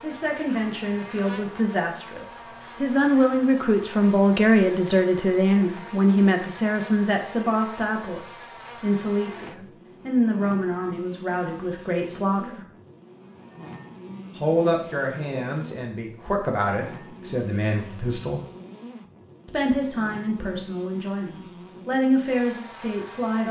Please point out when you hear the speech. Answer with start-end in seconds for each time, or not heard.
0.0-12.7, 14.3-18.4, 19.4-23.4.